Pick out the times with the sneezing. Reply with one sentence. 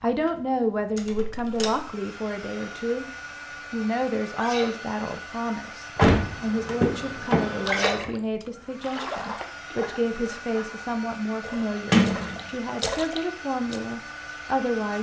The sneezing can be heard from 4.3 to 4.8 s and from 7.7 to 8.1 s.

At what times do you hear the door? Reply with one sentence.
The door can be heard from 0.9 to 1.8 s, from 6.0 to 8.1 s and from 11.9 to 12.4 s.